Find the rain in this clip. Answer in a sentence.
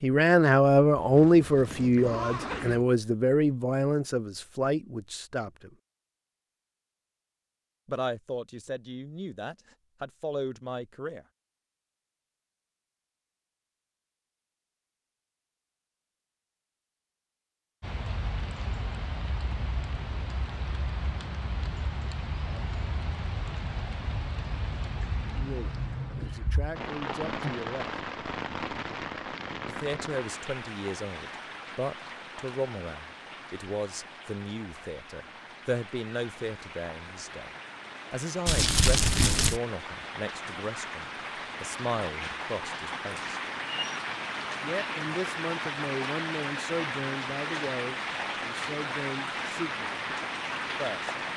You can hear the rain from 17.8 to 51.3 s.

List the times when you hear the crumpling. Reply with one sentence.
The crumpling can be heard from 38.5 to 39.6 s.